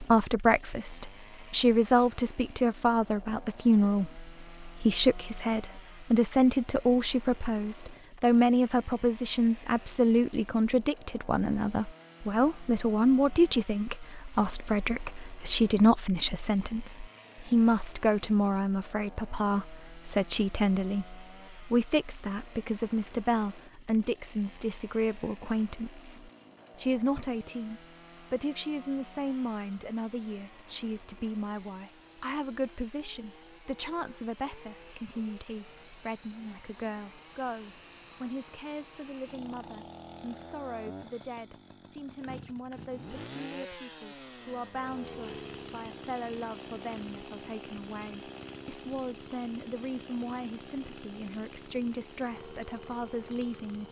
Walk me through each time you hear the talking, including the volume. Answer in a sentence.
You can hear the talking from 0.0 to 53.8 s, getting quieter.